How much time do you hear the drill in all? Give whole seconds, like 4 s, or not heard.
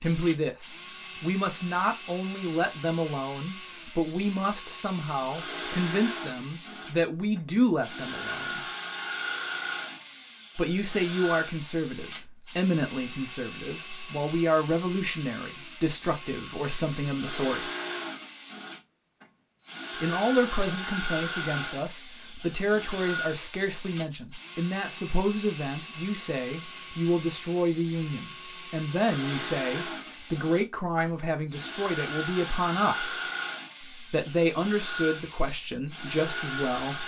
37 s.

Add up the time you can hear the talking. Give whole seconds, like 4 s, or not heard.
32 s.